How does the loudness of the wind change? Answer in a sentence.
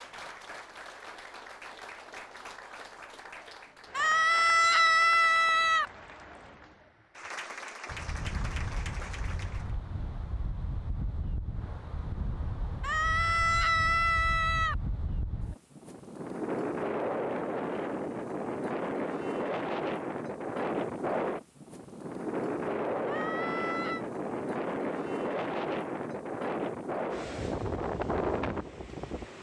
The loudness of the wind goes up.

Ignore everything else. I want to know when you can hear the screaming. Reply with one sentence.
The screaming can be heard from 4.0 to 5.8 s, from 12.8 to 14.8 s and from 23.1 to 24.1 s.